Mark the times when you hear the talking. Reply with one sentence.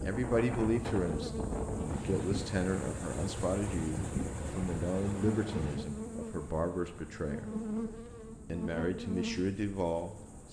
The talking can be heard from 0.0 to 7.5 s and from 8.5 to 10.4 s.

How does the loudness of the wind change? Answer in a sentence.
The loudness of the wind goes down.